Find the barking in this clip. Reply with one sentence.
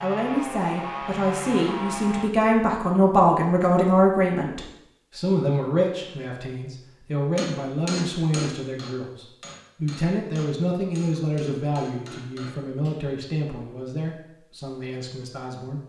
The barking can't be heard in this clip.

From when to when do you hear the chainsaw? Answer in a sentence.
You can hear the chainsaw from 0.0 to 2.3 s.